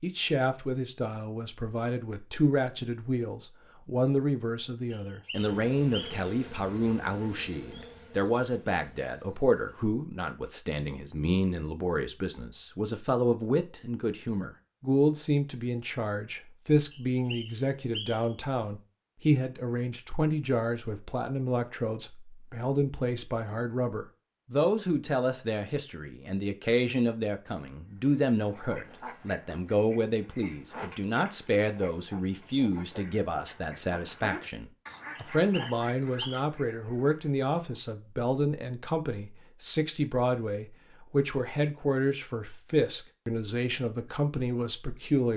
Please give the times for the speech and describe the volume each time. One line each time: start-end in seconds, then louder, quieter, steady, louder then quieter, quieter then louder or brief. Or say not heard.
0.0-45.3 steady.